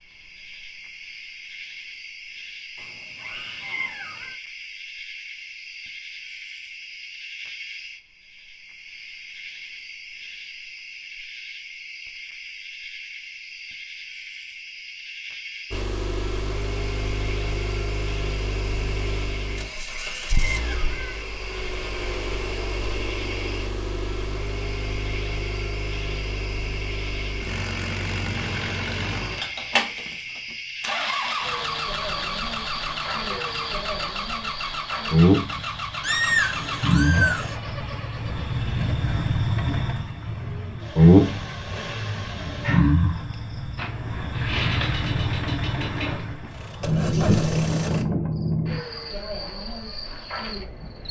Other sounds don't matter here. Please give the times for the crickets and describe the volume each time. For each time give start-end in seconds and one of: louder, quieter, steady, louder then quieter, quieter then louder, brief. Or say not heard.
0.0-51.0 louder.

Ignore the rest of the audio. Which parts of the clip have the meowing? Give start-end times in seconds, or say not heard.
2.8-4.3, 19.6-21.2, 36.0-37.5.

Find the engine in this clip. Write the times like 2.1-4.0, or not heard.
15.7-48.0.